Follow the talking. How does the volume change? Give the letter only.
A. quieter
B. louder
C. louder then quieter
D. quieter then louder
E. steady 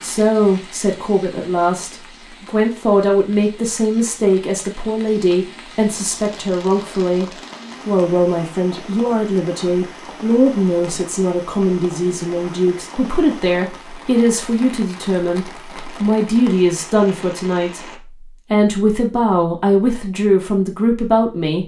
E.